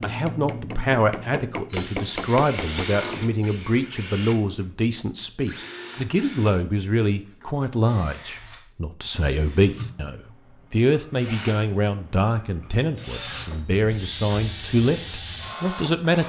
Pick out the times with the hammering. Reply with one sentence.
You can hear the hammering from 0.0 to 2.9 s.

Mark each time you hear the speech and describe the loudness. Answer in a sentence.
The speech can be heard from 0.0 to 16.2 s, at a steady volume.